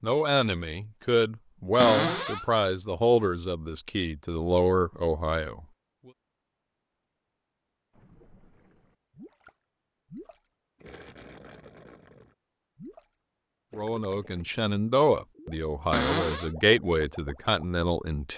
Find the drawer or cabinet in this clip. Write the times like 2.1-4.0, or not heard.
1.8-2.5, 15.9-16.5.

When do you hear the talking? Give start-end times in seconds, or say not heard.
0.0-5.7, 13.8-18.3.